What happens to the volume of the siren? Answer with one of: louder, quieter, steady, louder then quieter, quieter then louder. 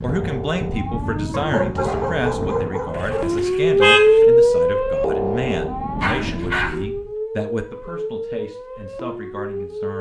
louder then quieter.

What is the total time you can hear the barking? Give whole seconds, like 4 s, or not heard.
3 s.